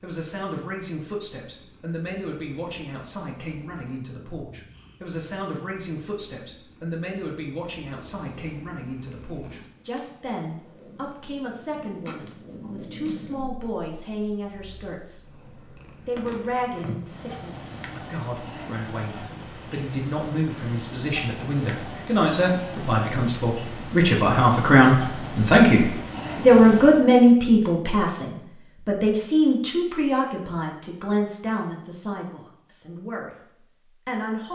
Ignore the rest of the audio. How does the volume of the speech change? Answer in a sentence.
The volume of the speech goes up, then down.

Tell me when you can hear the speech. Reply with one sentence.
The speech can be heard from 0.0 to 34.5 s.